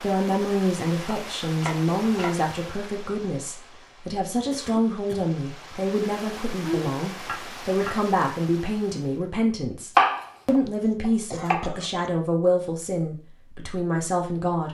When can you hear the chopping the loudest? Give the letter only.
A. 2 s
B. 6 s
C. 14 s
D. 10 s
D.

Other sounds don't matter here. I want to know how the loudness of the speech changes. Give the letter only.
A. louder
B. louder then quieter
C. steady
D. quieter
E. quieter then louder
C.